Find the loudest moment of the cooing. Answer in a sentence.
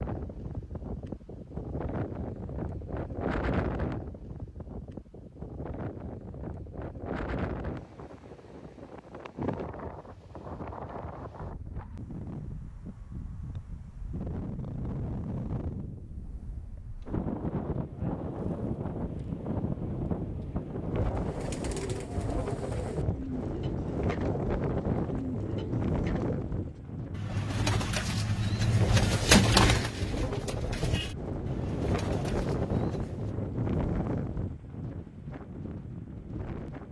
The loudest moment of the cooing is at 29 seconds.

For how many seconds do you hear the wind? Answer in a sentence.
You can hear the wind for 37 seconds altogether.